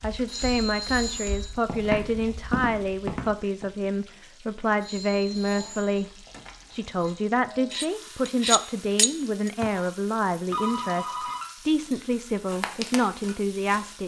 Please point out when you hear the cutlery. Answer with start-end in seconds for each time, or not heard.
7.7-9.7.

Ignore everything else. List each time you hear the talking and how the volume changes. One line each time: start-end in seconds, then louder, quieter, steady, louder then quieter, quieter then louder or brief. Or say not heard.
0.0-14.0 steady.